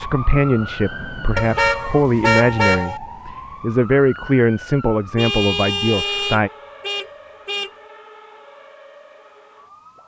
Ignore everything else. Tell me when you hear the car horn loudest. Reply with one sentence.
The loudest moment of the car horn is at 2 seconds.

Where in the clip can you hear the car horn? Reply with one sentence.
You can hear the car horn from 1.4 to 3.0 s and from 5.2 to 7.7 s.